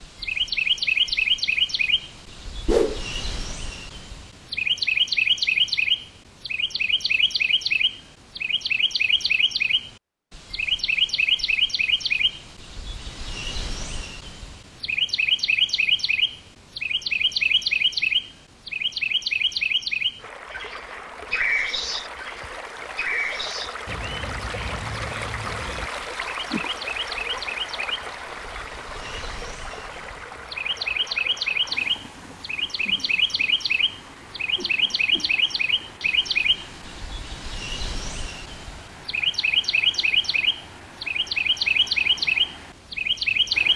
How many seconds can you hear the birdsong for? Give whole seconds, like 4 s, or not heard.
44 s.